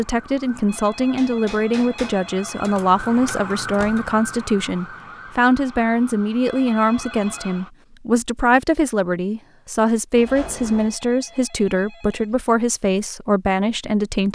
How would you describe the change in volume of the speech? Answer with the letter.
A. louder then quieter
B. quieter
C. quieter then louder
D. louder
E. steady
E.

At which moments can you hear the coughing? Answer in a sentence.
The coughing can't be heard in this clip.